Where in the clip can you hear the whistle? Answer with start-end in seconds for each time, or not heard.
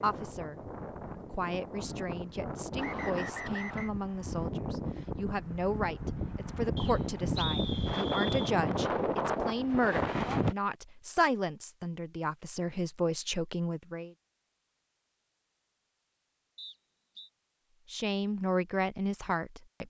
2.8-3.9, 6.8-8.6, 16.6-17.3.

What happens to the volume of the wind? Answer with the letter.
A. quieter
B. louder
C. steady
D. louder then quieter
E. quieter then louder
B.